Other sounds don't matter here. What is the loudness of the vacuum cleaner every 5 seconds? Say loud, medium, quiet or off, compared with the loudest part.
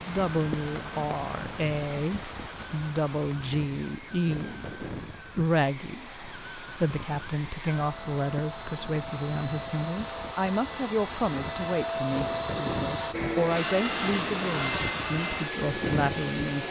quiet, medium, loud, loud.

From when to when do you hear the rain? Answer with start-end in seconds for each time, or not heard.
0.0-16.6.